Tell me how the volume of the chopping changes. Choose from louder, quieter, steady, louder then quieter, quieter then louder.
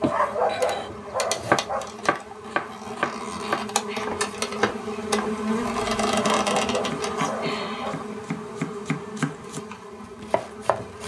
quieter then louder.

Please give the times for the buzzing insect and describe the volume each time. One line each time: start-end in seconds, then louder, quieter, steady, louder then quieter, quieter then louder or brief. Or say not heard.
0.0-11.0 louder then quieter.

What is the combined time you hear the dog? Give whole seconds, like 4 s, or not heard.
4 s.